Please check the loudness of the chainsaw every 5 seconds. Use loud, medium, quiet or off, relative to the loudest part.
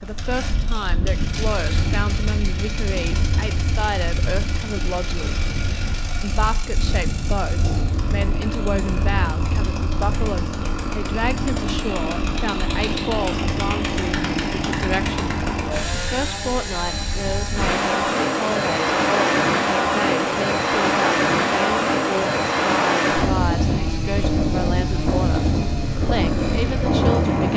medium, medium, loud, loud, medium, medium.